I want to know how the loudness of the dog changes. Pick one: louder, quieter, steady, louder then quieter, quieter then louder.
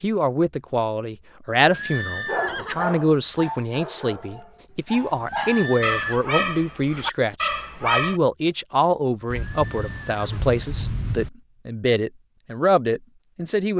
quieter then louder.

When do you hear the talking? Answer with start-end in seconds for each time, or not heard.
0.0-13.7.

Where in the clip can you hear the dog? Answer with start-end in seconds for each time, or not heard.
2.2-8.2.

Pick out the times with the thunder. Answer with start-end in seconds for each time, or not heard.
9.3-11.3.